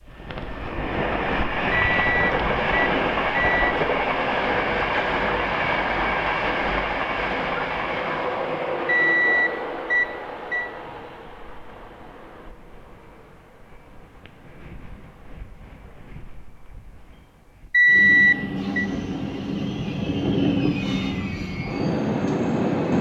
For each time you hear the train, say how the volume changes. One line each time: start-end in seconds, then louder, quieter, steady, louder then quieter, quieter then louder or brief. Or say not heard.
0.0-22.9 quieter then louder.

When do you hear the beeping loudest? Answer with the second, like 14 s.
18 s.